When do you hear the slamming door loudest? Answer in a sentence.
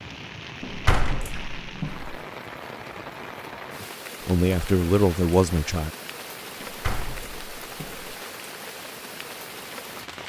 The volume of the slamming door peaks at 1 second.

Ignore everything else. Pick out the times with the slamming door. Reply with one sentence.
You can hear the slamming door from 0.6 to 2.1 s and from 6.6 to 8.1 s.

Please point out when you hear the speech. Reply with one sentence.
The speech can be heard from 4.2 to 5.9 s.